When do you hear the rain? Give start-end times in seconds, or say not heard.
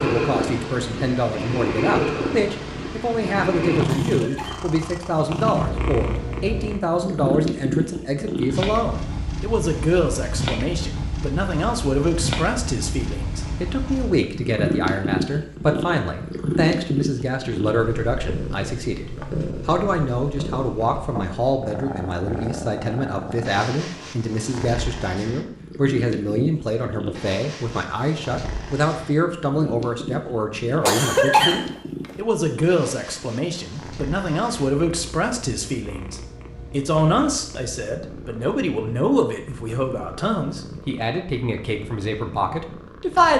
not heard.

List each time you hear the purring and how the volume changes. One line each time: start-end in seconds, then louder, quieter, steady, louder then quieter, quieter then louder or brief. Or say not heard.
0.0-43.3 quieter.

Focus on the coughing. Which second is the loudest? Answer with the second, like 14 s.
31 s.